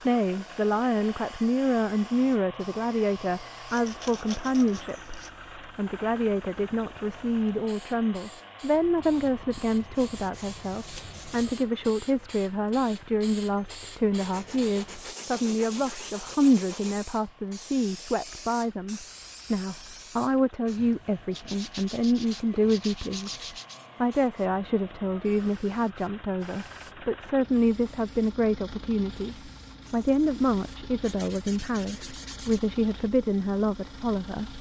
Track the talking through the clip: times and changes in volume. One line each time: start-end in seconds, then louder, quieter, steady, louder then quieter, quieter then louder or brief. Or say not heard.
0.1-34.5 steady.